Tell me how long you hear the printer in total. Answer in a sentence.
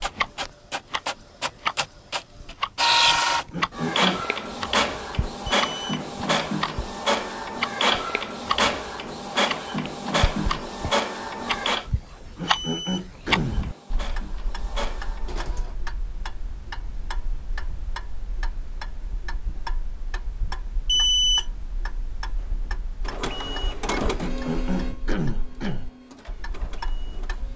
The printer can be heard for 19 seconds in total.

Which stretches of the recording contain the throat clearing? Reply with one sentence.
The throat clearing can be heard from 3.5 to 4.2 s, from 12.3 to 13.6 s and from 24.1 to 25.9 s.